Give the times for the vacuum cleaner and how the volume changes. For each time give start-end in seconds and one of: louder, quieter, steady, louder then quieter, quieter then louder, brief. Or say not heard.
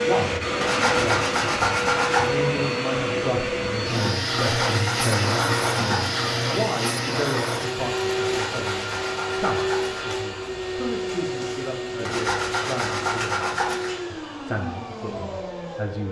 0.0-16.0 quieter.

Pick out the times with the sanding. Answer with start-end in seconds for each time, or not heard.
0.6-2.3, 4.4-6.3, 8.2-10.1, 12.1-13.9.